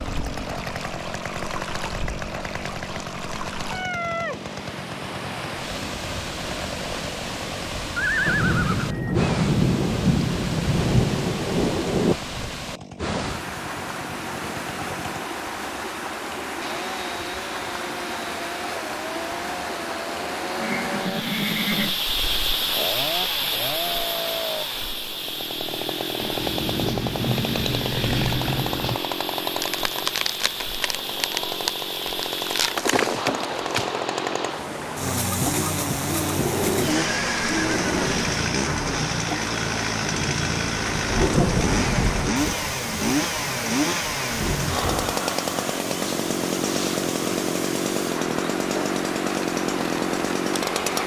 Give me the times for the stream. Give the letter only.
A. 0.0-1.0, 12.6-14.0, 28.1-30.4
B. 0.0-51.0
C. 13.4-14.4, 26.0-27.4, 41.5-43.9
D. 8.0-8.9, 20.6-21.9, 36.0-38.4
B.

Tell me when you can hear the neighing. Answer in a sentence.
You can hear the neighing from 8.0 to 8.9 s, from 20.6 to 21.9 s and from 36.0 to 38.4 s.